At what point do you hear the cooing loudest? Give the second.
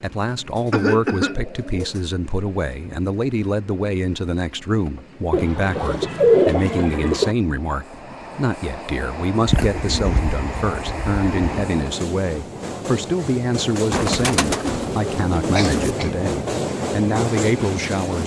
6 s.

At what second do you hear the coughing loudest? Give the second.
1 s.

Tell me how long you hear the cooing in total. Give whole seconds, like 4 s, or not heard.
8 s.